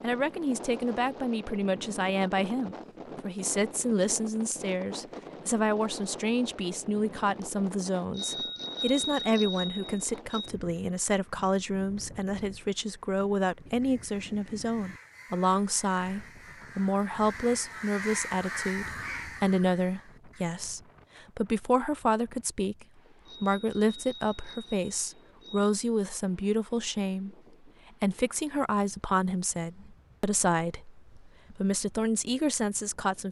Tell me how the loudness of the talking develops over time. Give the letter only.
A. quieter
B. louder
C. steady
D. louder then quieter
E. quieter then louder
C.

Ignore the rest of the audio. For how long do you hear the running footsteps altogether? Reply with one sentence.
The running footsteps can't be heard in this clip.